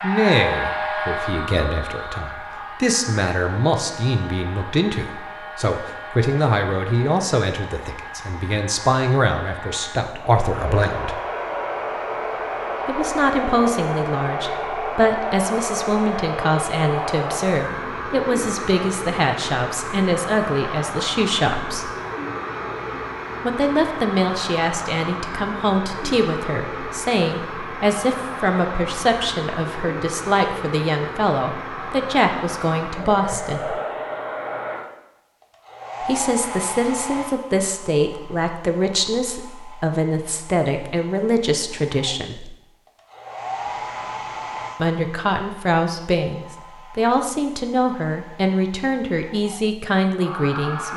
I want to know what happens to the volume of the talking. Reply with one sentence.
The volume of the talking stays about the same.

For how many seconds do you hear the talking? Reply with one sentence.
The talking can be heard for 43 seconds in total.